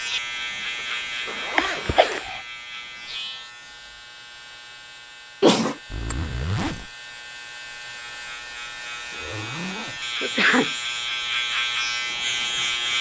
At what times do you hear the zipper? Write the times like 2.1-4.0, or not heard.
0.8-2.2, 5.9-6.9, 9.1-10.4.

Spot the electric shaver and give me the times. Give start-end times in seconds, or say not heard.
0.0-12.9.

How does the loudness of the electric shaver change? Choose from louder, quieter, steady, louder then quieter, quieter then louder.
quieter then louder.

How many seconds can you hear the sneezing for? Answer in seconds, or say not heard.
2 s.